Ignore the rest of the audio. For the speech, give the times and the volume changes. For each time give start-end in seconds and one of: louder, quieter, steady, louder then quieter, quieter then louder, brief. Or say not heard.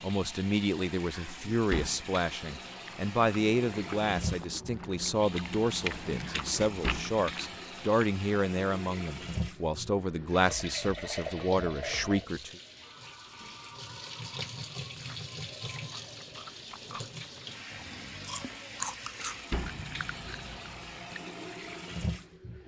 0.0-12.6 steady.